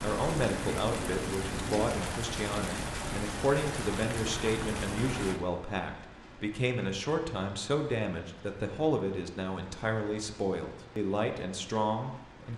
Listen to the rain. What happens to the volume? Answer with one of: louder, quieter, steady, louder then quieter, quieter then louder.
quieter.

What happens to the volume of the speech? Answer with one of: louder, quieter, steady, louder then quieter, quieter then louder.
steady.